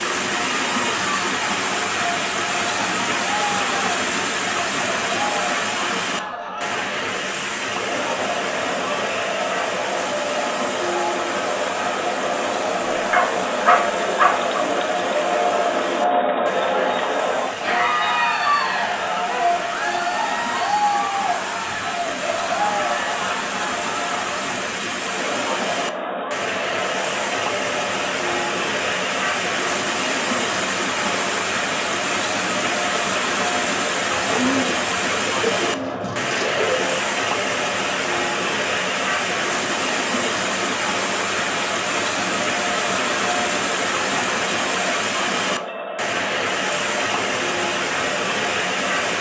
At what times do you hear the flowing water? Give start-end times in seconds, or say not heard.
0.0-49.1.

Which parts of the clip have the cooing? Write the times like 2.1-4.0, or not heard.
34.1-37.0.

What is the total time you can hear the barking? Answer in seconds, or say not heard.
2 s.